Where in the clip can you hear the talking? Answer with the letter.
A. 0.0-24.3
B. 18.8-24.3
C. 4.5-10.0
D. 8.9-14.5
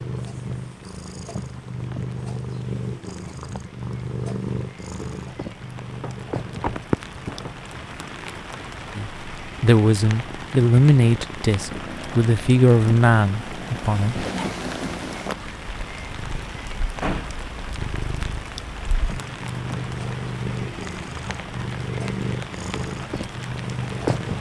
D.